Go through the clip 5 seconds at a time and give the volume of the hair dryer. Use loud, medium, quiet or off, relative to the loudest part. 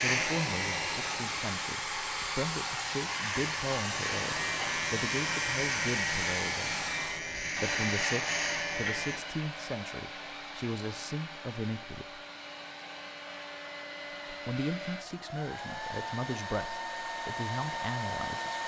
loud, loud, medium, loud.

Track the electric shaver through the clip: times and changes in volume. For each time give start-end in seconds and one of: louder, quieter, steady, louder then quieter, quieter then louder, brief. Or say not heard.
0.0-9.2 louder.